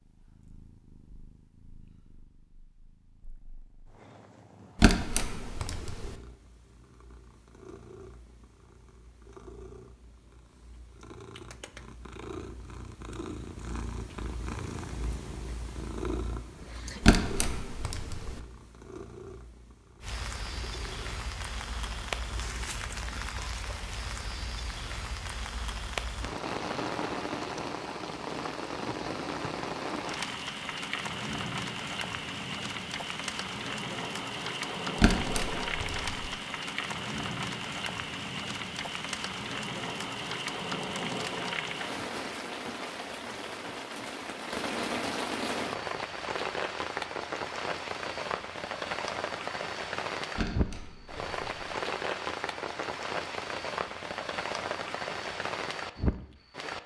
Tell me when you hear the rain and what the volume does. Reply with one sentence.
You can hear the rain from 20.0 to 56.8 s, at a steady volume.